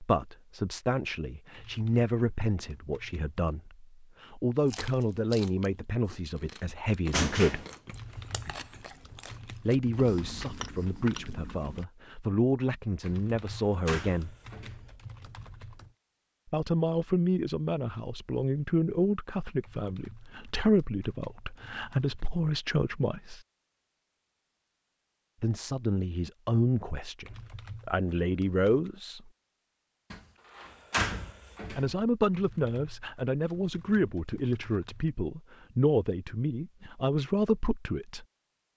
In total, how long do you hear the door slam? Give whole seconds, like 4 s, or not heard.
4 s.